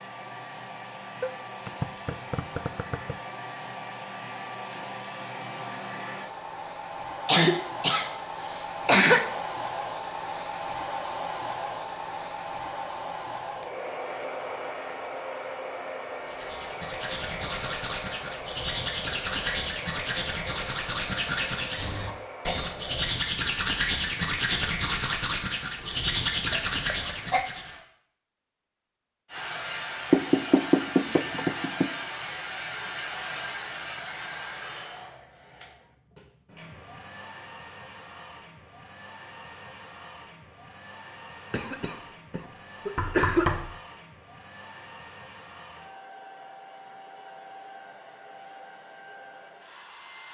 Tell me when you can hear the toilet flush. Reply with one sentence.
You can't hear the toilet flush here.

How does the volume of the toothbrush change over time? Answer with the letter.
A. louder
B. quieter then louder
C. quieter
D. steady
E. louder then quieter
A.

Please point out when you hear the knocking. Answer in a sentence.
You can hear the knocking from 1.2 to 3.1 s, from 30.1 to 31.9 s and from 43.0 to 43.8 s.